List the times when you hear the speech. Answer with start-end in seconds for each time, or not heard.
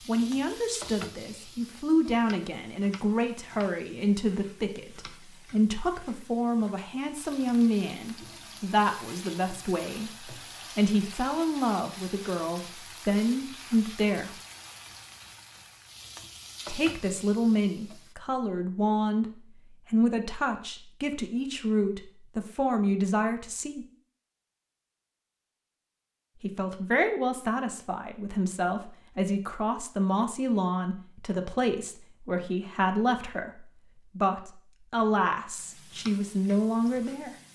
0.1-14.4, 16.6-23.9, 26.4-37.4.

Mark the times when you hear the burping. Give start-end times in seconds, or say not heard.
not heard.